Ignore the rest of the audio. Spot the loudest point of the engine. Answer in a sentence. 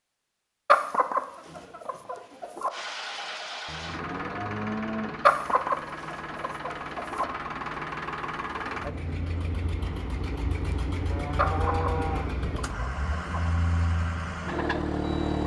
The volume of the engine peaks at 15 seconds.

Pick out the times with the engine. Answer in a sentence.
You can hear the engine from 2.7 to 15.4 s.